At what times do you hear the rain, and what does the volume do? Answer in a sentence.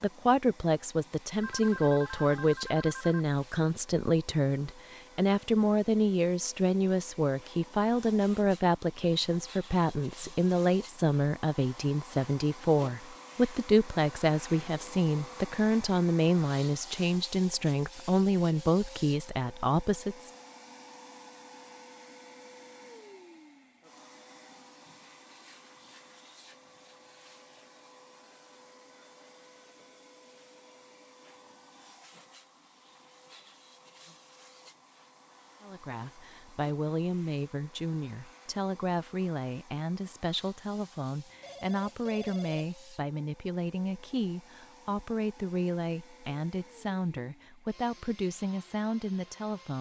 You can't hear the rain here.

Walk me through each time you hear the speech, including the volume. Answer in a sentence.
You can hear the speech from 0.0 to 20.3 s, at a steady volume; and from 35.6 to 49.7 s, at a steady volume.